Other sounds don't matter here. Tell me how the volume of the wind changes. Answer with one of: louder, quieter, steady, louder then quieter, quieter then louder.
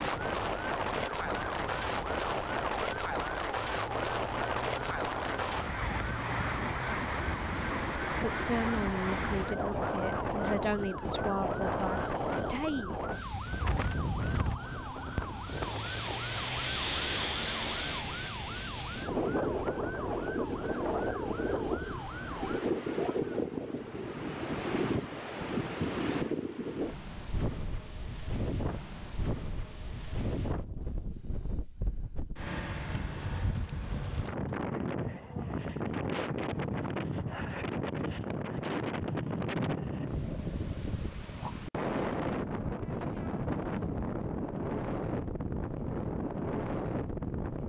steady.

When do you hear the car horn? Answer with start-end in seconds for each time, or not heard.
not heard.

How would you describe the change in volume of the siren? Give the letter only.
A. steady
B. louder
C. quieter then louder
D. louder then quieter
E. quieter
A.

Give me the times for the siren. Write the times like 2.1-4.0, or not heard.
0.0-22.6.